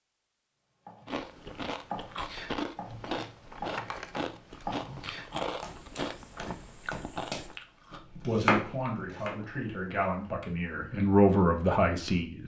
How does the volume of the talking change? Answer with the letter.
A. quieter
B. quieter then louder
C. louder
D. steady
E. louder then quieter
C.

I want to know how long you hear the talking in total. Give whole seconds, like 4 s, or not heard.
4 s.